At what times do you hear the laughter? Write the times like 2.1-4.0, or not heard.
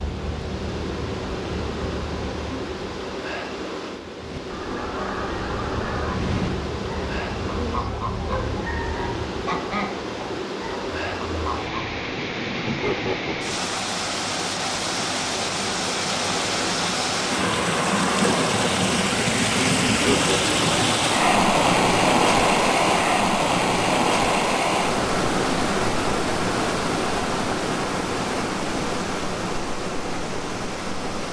12.7-13.8, 19.9-20.6.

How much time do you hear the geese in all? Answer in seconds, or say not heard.
8 s.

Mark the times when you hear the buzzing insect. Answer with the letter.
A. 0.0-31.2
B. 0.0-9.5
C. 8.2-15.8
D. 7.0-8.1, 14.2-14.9
B.